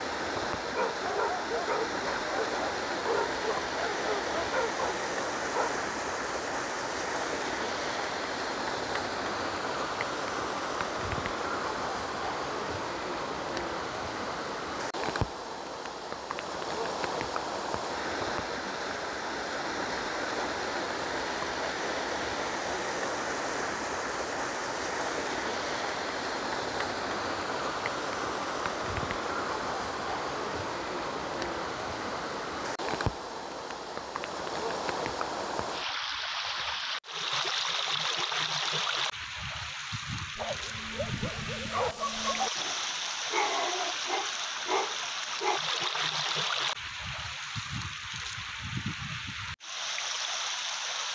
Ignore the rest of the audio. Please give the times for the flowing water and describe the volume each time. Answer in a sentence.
The flowing water can be heard from 0.0 to 51.0 s, at a steady volume.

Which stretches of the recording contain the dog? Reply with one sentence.
You can hear the dog from 0.7 to 5.8 s and from 40.4 to 45.6 s.